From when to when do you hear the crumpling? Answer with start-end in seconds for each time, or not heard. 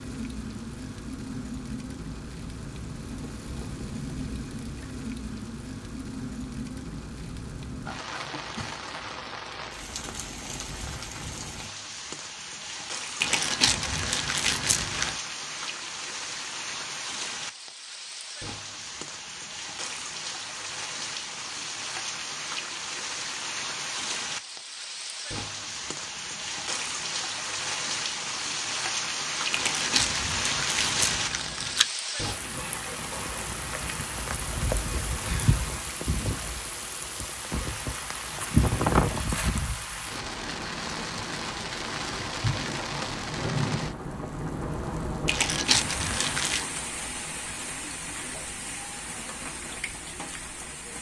13.2-15.2, 29.5-31.9, 45.2-46.6.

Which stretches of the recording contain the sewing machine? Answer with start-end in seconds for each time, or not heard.
not heard.